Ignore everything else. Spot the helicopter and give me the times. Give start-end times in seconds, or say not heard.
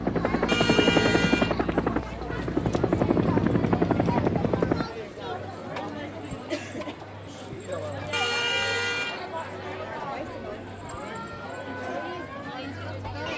0.0-4.9.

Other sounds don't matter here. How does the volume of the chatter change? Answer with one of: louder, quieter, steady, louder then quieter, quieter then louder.
steady.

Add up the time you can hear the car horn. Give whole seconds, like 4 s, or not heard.
2 s.